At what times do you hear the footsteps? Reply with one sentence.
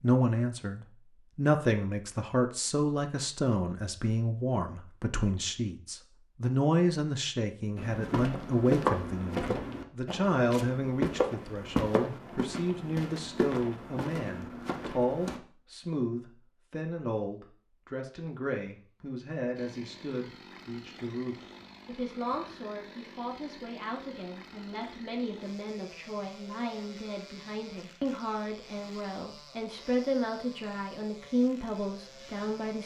You can hear the footsteps from 7.8 to 15.4 s.